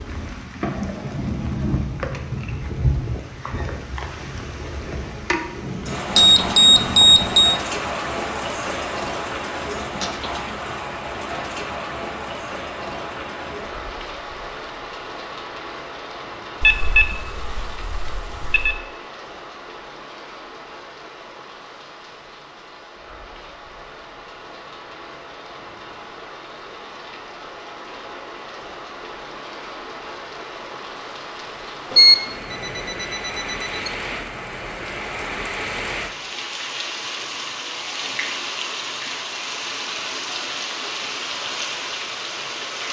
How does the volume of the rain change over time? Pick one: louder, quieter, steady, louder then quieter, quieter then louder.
quieter then louder.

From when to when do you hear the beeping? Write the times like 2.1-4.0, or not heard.
6.1-7.5, 16.6-18.8, 31.9-33.9.